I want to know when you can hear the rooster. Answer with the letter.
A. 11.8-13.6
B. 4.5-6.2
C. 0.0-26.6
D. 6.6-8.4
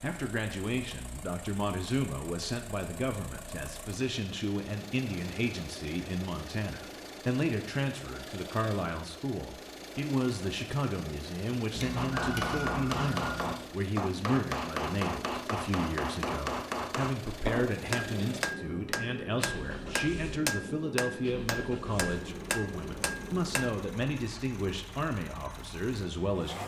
A.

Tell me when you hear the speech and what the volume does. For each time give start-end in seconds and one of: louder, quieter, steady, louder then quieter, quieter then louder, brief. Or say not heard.
0.0-26.6 steady.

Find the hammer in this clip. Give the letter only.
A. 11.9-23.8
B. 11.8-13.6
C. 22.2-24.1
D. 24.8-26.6
A.